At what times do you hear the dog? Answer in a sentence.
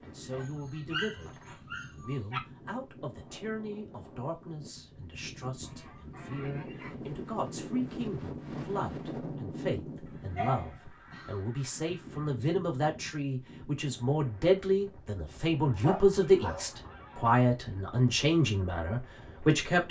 The dog can be heard from 0.4 to 2.4 s, from 10.3 to 11.3 s and from 15.8 to 16.7 s.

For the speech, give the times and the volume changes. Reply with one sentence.
You can hear the speech from 0.0 to 19.8 s, getting louder.